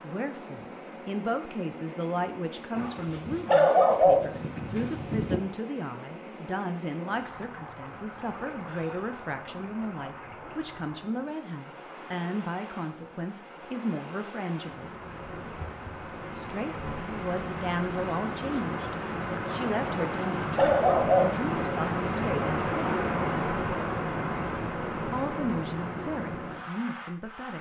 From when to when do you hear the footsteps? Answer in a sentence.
The footsteps can't be heard in this clip.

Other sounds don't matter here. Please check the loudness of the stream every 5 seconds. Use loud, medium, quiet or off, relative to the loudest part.
quiet, quiet, quiet, medium, loud, medium.